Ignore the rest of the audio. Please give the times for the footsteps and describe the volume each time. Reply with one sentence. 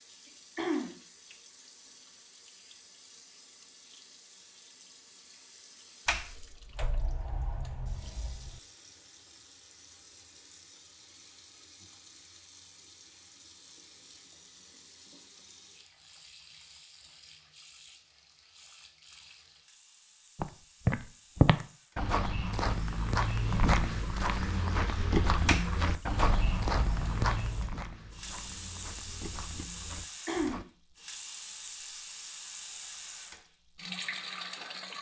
The footsteps can be heard from 20.4 to 30.6 s, getting quieter.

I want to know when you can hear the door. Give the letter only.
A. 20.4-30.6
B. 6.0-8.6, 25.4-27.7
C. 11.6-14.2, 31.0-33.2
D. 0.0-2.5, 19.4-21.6
B.